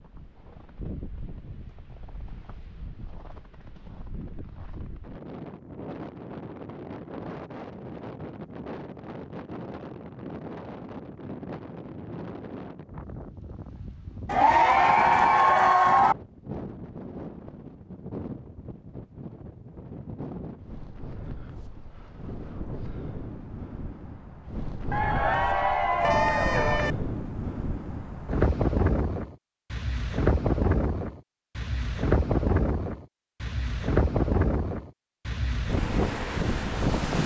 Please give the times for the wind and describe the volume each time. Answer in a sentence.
You can hear the wind from 0.0 to 37.2 s, getting louder.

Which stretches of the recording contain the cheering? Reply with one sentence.
The cheering can be heard from 14.2 to 16.1 s and from 24.9 to 26.9 s.